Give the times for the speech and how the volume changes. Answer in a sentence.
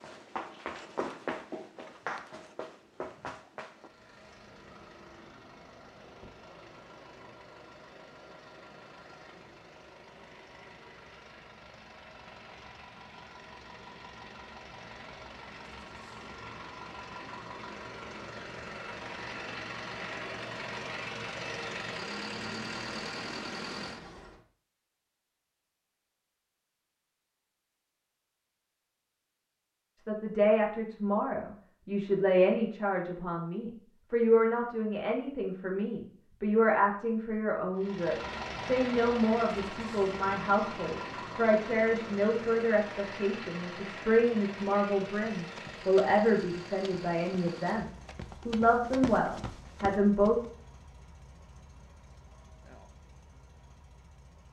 You can hear the speech from 29.9 to 50.4 s, at a steady volume.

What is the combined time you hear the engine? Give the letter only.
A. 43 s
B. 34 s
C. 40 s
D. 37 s
D.